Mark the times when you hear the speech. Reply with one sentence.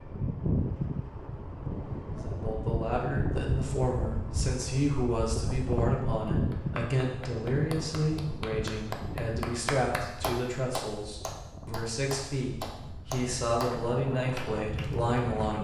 The speech can be heard from 2.1 to 15.5 s.